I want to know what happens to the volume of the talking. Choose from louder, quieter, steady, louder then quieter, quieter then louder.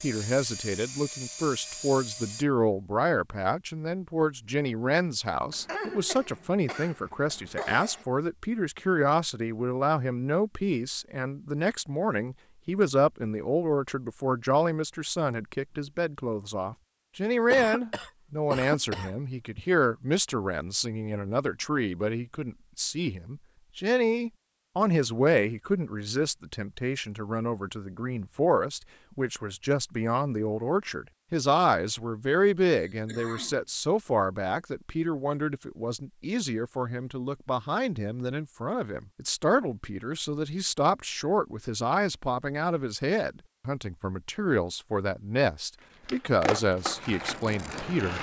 steady.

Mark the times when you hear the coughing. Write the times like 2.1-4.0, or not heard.
5.5-8.1, 17.5-19.6, 32.7-33.6.